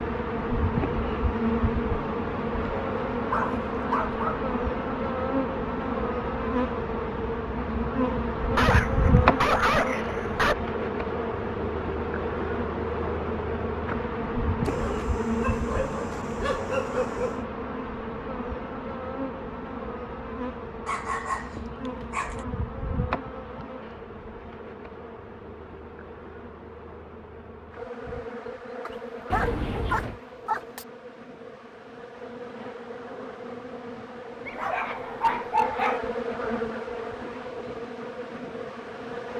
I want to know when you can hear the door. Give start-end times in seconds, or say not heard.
29.3-30.2.